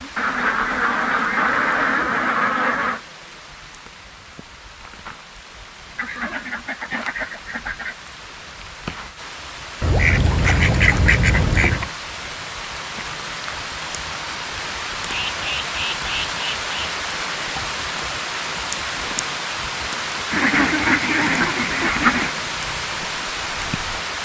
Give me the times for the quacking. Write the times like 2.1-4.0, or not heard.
0.1-3.0, 6.0-8.0, 9.8-11.9, 15.1-16.7, 20.3-22.3.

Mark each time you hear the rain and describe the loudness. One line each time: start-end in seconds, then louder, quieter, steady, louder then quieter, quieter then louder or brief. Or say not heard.
0.0-24.2 louder.